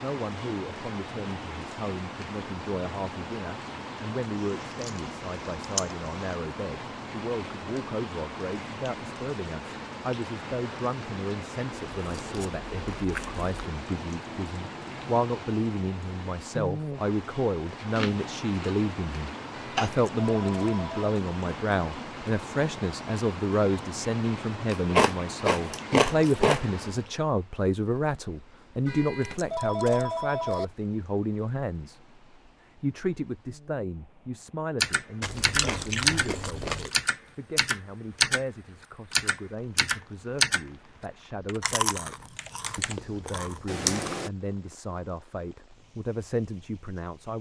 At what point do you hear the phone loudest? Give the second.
30 s.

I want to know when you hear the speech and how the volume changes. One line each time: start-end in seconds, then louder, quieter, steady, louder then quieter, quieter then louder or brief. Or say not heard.
0.0-47.3 louder then quieter.